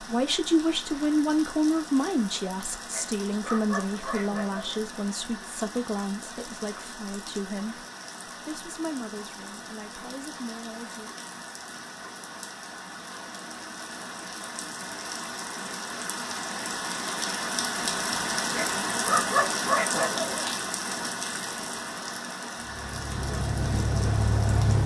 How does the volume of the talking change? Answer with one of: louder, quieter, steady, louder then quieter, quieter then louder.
quieter.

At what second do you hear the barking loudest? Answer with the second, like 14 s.
19 s.